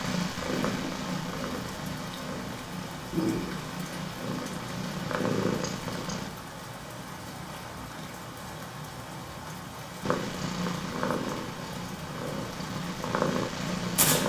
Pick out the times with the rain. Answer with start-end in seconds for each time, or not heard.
0.0-14.2.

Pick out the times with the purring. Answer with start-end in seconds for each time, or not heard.
0.0-6.3, 10.0-14.2.